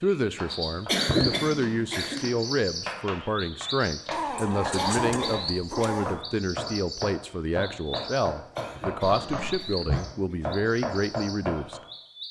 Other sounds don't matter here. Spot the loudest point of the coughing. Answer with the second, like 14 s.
1 s.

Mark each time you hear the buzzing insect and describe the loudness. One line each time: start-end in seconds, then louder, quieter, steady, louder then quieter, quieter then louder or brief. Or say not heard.
not heard.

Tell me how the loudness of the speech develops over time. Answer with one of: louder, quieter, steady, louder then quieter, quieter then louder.
steady.